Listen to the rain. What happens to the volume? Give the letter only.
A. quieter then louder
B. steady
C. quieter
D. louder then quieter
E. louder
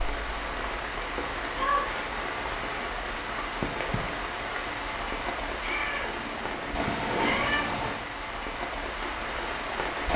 B.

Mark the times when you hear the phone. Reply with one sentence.
The phone can't be heard in this clip.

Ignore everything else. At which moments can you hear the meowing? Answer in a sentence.
The meowing can be heard from 1.6 to 2.0 s and from 5.6 to 7.7 s.